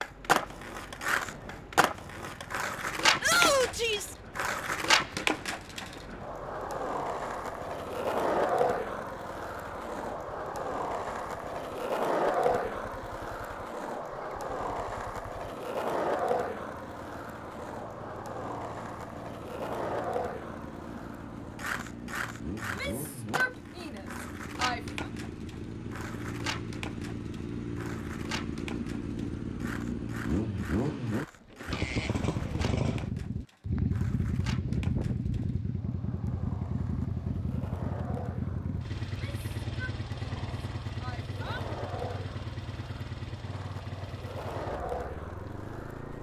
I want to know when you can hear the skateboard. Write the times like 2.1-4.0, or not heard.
0.0-46.1.